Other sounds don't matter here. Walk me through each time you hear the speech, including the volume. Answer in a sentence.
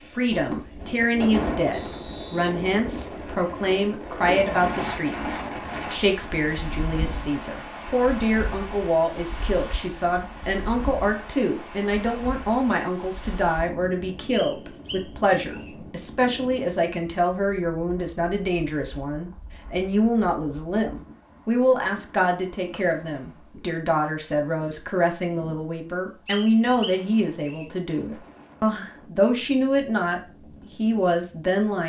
You can hear the speech from 0.1 to 31.8 s, at a steady volume.